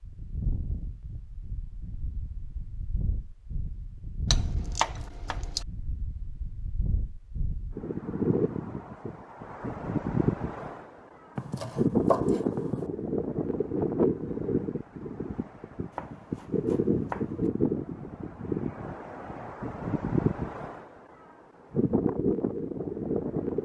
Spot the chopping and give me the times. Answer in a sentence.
You can hear the chopping from 4.3 to 5.7 s, from 11.3 to 12.8 s and from 15.9 to 17.5 s.